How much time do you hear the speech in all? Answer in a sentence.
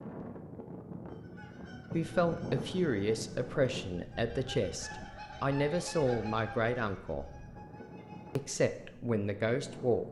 You can hear the speech for 7 seconds altogether.